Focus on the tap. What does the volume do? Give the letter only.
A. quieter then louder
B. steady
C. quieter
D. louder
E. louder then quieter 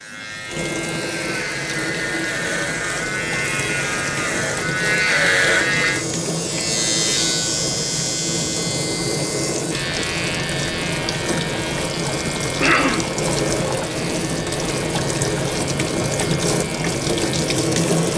D.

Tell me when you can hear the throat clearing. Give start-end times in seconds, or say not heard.
12.6-13.1.